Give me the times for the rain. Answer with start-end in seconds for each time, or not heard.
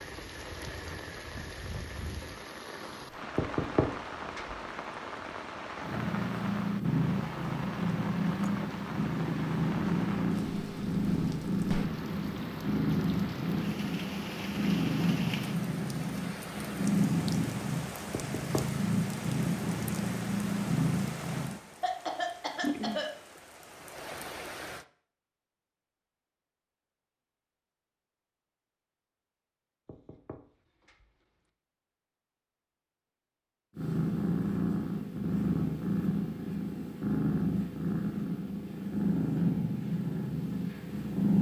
0.0-24.9.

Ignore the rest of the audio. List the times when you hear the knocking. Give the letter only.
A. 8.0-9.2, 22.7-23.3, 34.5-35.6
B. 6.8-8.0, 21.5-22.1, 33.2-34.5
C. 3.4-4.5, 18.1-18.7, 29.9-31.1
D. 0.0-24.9
C.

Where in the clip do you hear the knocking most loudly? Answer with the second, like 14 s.
4 s.